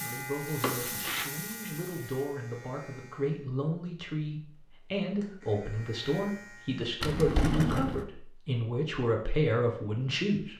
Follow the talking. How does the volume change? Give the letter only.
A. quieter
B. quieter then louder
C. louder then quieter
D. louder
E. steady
D.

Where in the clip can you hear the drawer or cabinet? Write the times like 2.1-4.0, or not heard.
0.6-1.3, 7.0-8.1.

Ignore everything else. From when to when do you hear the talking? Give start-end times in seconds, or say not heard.
0.0-10.5.